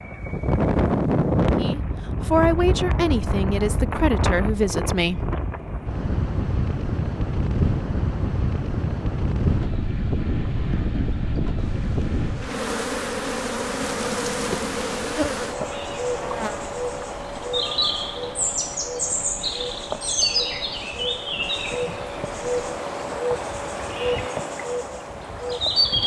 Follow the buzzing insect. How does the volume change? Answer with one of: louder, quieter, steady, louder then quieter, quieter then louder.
steady.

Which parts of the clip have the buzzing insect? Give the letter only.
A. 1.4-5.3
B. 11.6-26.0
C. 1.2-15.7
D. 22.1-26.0
B.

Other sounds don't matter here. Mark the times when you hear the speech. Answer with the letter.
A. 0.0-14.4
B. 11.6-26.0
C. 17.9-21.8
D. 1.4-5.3
D.